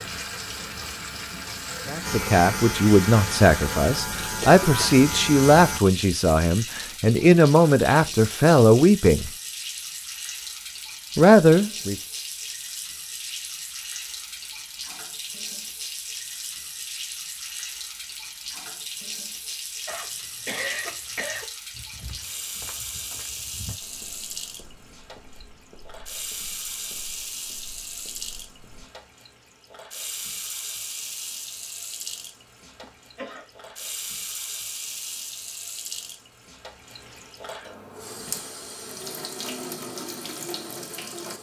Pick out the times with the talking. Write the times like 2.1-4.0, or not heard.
1.9-9.3, 11.2-11.9.